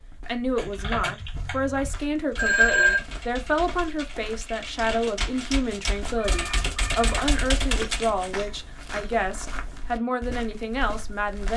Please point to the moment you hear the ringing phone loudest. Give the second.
3 s.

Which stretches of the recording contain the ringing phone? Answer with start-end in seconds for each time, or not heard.
2.4-3.0, 6.2-7.2.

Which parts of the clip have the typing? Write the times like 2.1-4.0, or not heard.
0.6-8.3.